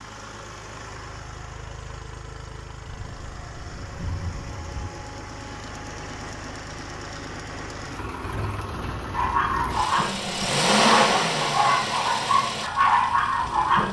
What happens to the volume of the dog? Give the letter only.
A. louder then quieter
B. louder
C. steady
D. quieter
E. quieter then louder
E.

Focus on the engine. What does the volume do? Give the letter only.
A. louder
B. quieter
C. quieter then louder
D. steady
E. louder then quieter
A.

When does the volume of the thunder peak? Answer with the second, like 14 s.
4 s.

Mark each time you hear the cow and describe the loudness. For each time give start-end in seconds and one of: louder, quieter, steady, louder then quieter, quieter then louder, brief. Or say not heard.
not heard.